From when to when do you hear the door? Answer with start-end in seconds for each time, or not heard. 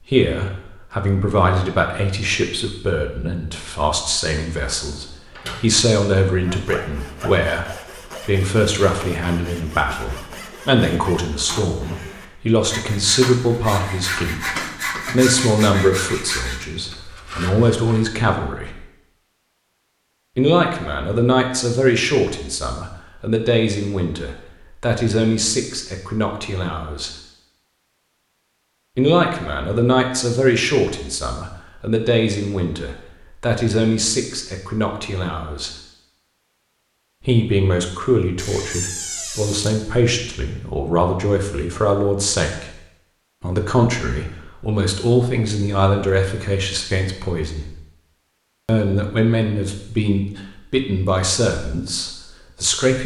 4.9-5.7, 38.4-39.8.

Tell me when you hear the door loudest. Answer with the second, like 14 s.
39 s.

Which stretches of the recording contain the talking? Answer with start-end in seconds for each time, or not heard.
0.0-18.8, 20.4-27.1, 28.9-35.7, 37.2-42.8, 43.4-47.8, 48.6-53.0.